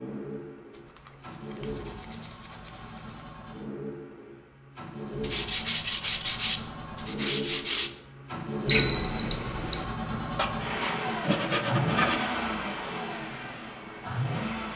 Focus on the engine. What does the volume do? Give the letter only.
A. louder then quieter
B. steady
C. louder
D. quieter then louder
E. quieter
C.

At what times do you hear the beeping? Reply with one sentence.
The beeping can be heard from 8.7 to 9.8 s.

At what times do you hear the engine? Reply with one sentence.
The engine can be heard from 0.0 to 14.7 s.